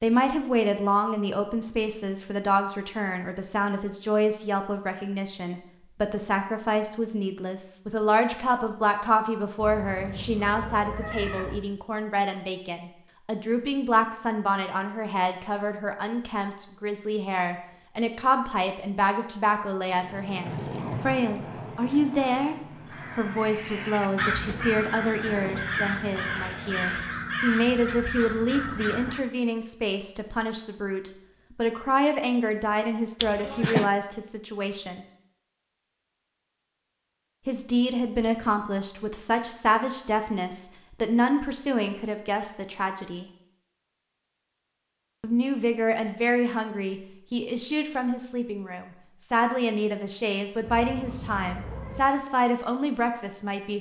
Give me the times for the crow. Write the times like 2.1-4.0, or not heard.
22.9-29.2.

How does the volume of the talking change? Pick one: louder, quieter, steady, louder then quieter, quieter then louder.
steady.